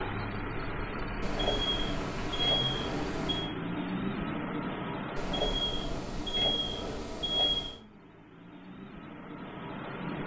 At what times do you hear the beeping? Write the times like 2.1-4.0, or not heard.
1.2-3.5, 5.2-7.8.